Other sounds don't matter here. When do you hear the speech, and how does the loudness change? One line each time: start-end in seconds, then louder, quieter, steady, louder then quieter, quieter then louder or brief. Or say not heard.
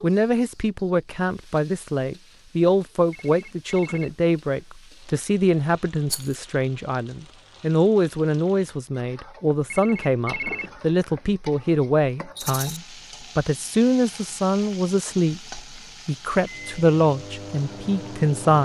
0.0-18.5 steady.